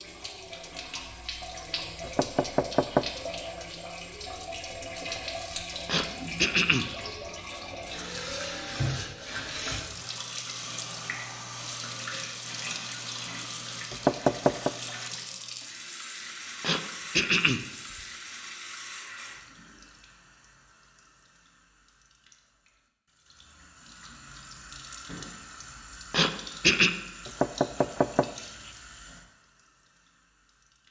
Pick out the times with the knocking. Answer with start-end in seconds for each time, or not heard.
2.0-3.5, 13.9-14.7, 27.2-28.7.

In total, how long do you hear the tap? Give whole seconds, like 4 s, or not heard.
31 s.